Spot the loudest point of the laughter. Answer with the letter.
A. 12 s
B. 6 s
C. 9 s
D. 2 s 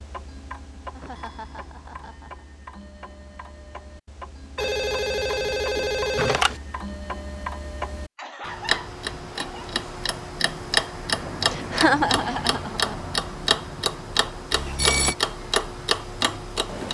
A.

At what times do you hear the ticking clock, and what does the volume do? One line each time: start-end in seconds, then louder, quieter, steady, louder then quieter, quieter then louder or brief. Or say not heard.
0.0-16.8 louder.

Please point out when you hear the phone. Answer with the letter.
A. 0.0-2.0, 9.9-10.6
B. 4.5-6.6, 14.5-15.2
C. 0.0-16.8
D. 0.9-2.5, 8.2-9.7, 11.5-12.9
B.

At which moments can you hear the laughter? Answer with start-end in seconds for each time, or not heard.
0.9-2.5, 8.2-9.7, 11.5-12.9.